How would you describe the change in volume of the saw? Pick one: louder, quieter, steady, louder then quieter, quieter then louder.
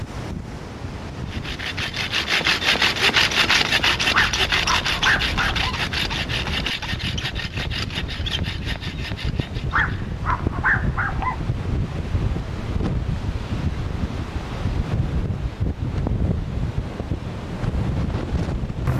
quieter.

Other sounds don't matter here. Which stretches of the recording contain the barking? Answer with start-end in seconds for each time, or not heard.
4.1-5.8, 9.7-11.4.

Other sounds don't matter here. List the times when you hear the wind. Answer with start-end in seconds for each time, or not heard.
0.0-18.9.